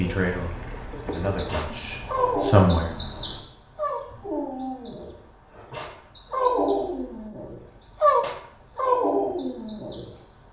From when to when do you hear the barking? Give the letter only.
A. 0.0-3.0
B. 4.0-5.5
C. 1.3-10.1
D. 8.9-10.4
C.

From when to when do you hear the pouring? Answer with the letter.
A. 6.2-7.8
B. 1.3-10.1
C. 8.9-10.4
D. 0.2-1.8
D.